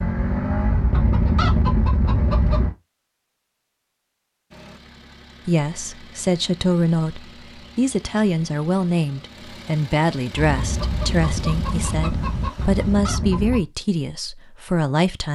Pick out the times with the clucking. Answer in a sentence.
The clucking can be heard from 0.0 to 2.8 s and from 10.3 to 13.7 s.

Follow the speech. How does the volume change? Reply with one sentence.
The volume of the speech stays about the same.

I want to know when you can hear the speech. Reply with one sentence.
The speech can be heard from 5.5 to 15.2 s.